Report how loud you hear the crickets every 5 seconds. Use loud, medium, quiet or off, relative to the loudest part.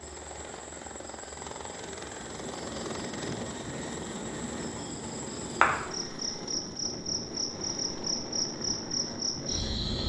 quiet, loud.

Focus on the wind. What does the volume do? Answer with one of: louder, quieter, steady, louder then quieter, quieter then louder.
steady.